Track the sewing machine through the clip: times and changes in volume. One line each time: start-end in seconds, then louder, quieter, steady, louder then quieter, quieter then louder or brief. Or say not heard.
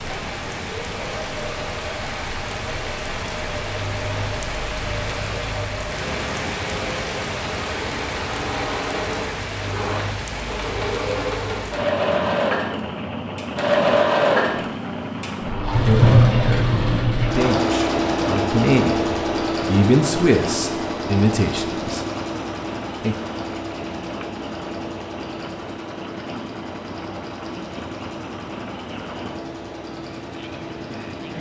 0.0-31.3 louder then quieter.